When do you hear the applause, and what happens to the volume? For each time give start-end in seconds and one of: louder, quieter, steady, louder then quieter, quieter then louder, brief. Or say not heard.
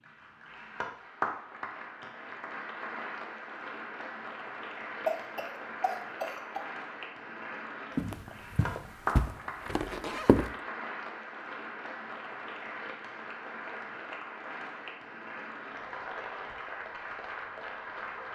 0.0-18.3 steady.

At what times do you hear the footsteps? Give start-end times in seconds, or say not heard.
8.0-10.5.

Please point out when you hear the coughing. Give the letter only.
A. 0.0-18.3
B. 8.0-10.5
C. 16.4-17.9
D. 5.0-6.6
D.